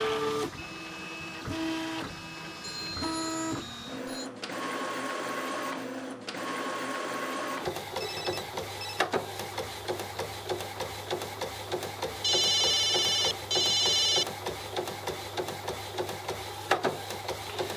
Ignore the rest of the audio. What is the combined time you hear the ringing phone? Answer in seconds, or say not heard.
5 s.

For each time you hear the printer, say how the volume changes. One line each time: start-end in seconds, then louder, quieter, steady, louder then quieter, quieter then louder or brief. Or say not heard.
0.0-17.7 steady.